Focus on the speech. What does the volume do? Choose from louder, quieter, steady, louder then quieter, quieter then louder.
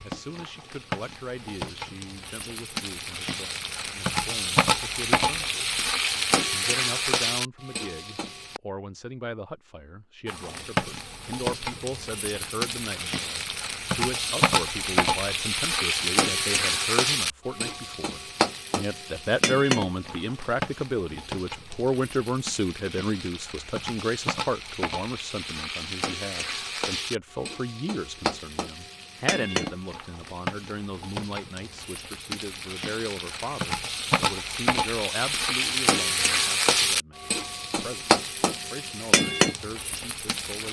louder then quieter.